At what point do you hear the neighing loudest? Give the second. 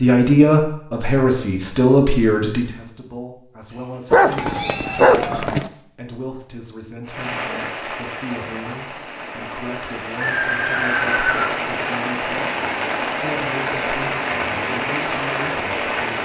11 s.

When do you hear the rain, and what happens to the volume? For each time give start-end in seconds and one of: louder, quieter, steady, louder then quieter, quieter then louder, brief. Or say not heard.
7.0-16.1 louder.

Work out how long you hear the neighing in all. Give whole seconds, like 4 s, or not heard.
3 s.